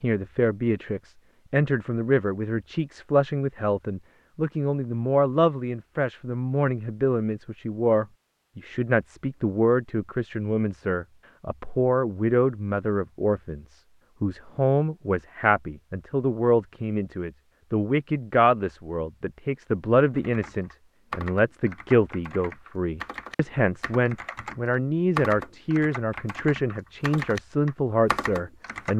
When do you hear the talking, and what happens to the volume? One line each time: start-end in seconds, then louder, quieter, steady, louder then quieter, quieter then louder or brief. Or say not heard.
0.0-28.9 steady.